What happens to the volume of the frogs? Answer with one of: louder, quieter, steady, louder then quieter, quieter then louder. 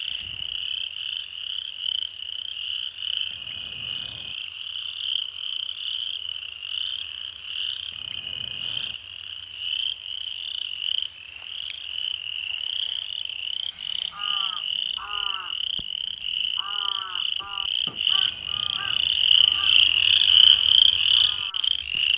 louder.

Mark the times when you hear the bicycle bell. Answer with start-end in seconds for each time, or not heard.
3.3-4.3, 7.9-8.9, 18.1-19.1.